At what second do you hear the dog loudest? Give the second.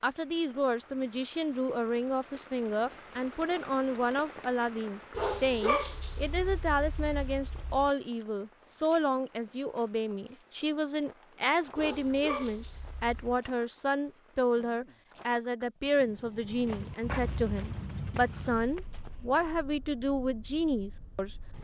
6 s.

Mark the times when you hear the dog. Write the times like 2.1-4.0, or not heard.
5.2-7.9, 11.8-13.4.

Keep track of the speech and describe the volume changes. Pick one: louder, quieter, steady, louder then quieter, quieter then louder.
steady.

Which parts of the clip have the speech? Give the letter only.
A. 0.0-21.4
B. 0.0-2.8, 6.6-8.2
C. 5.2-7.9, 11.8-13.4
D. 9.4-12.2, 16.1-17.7
A.